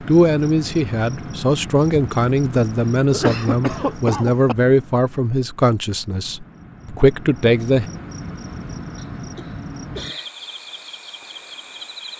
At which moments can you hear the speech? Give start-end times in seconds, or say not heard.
0.1-7.9.